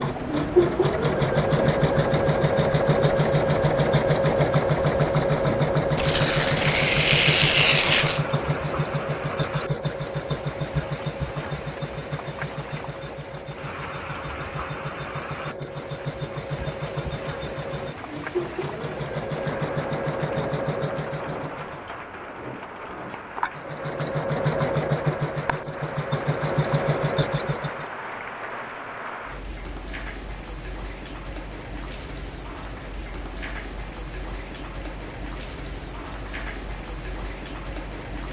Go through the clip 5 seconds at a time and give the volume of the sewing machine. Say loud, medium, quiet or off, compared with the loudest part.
loud, loud, medium, medium, medium, medium, off, off.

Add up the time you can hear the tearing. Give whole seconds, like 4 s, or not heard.
2 s.